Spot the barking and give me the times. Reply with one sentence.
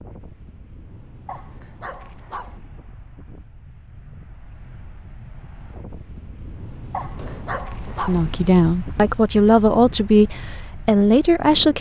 You can hear the barking from 1.2 to 2.6 s and from 6.9 to 8.2 s.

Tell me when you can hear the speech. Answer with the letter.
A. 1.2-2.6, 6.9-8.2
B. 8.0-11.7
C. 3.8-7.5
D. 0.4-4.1
B.